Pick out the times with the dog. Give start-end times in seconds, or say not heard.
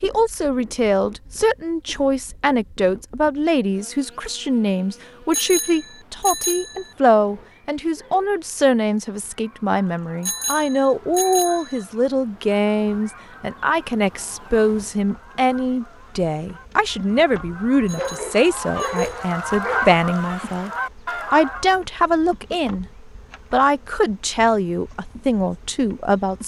7.2-8.4, 17.9-19.9.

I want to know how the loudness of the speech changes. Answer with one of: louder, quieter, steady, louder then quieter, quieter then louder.
steady.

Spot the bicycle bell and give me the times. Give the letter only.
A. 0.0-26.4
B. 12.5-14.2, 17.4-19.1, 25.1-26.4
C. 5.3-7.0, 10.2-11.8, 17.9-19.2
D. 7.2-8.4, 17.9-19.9
C.